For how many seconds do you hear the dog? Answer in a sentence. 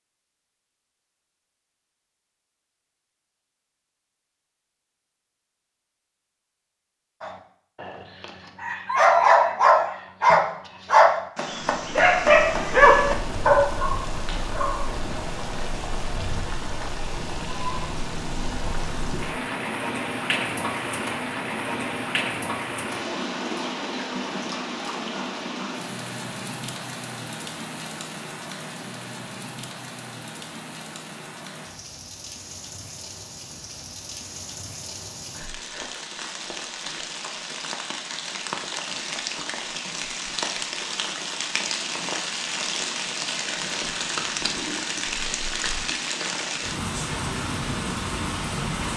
You can hear the dog for 8 seconds altogether.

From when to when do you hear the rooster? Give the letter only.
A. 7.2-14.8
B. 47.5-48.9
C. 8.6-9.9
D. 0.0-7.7
C.